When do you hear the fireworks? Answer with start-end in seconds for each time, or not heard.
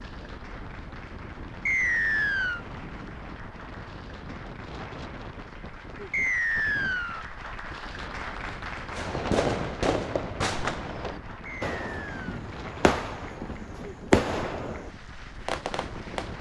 8.9-16.3.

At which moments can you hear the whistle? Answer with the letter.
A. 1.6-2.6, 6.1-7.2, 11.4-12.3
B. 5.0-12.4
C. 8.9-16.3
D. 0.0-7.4
A.